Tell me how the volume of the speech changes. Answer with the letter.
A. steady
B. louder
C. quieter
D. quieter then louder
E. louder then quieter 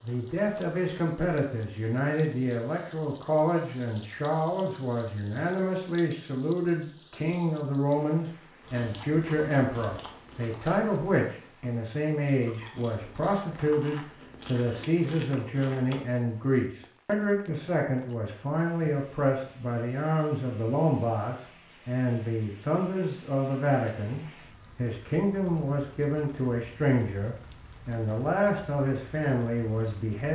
A.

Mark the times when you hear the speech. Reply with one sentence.
You can hear the speech from 0.0 to 30.3 s.